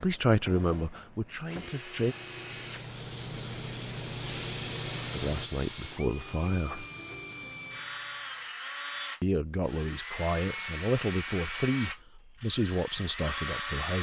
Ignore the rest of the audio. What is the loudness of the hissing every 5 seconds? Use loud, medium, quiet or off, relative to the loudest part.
loud, medium, off.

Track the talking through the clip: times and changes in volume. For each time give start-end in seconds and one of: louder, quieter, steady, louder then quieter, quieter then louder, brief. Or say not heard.
0.0-2.1 brief
5.2-6.8 brief
9.2-13.9 steady.